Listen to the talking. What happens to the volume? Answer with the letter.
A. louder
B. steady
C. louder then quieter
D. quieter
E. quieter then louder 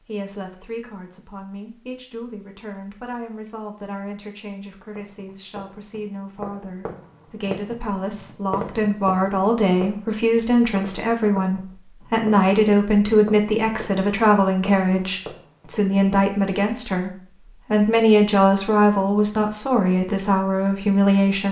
A.